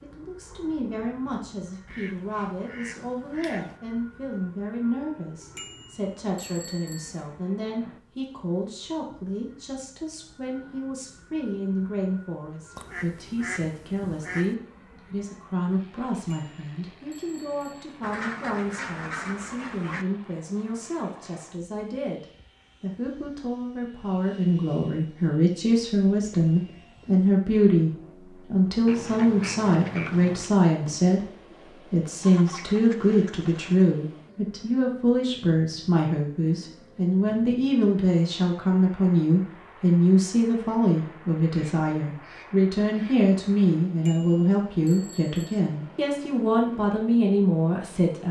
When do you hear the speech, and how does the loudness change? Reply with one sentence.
You can hear the speech from 0.0 to 48.2 s, getting louder.